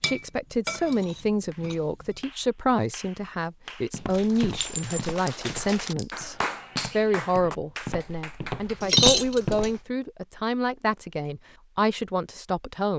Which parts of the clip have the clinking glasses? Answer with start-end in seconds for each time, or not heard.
0.0-1.8, 4.6-6.3, 8.8-9.7.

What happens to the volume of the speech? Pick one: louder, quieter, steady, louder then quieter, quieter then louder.
steady.